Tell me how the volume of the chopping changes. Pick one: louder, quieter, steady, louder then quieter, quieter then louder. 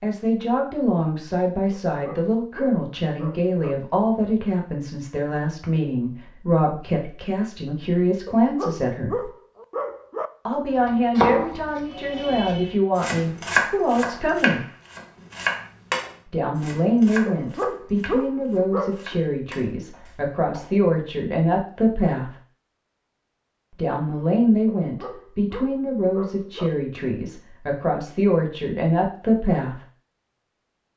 quieter.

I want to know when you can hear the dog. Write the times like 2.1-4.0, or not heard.
1.7-3.8, 8.2-10.3, 17.2-19.2, 24.6-26.7.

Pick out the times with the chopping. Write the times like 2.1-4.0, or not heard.
10.8-20.9.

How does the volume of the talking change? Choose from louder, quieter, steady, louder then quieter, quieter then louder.
steady.